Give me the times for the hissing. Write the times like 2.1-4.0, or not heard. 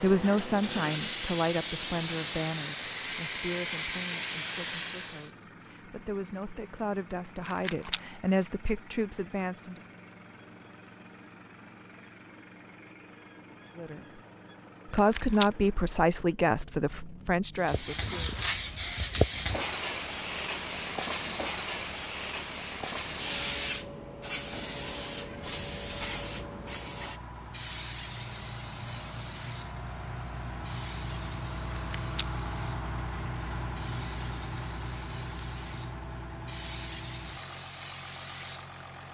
0.0-5.3, 17.6-39.1.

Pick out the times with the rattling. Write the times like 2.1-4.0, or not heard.
7.5-8.0, 14.9-15.5, 31.9-32.4.